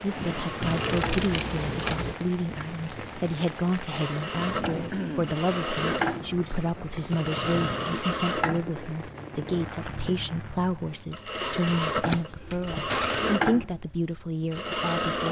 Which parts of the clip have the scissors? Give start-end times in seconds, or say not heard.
0.6-2.1, 5.5-8.0, 11.9-13.2.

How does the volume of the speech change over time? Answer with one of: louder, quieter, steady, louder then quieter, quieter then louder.
steady.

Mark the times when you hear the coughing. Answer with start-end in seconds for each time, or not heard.
12.4-13.3.